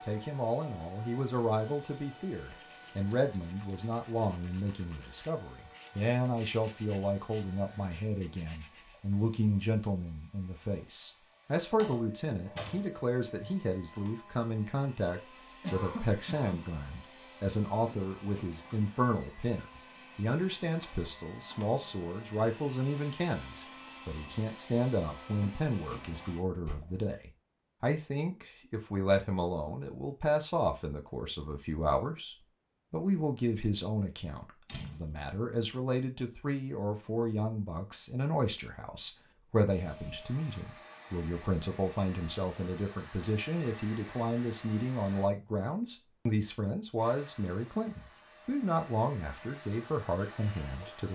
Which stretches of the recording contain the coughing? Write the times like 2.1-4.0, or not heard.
15.6-16.8.